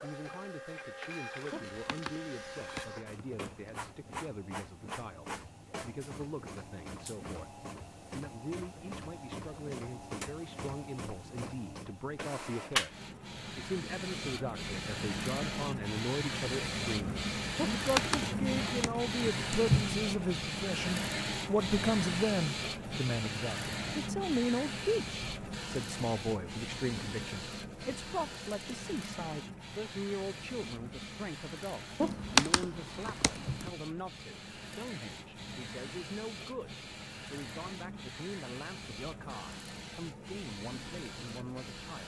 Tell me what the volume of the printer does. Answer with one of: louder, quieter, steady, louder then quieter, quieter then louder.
louder then quieter.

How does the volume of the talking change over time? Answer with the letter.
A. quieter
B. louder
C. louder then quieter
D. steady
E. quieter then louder
C.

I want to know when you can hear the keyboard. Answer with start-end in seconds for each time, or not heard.
1.5-3.8, 17.6-19.6, 32.0-33.7.